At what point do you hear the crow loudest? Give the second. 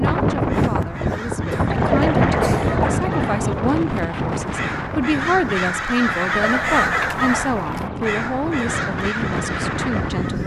7 s.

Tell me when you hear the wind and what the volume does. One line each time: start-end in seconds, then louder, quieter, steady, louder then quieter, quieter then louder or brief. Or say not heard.
0.0-10.4 quieter then louder.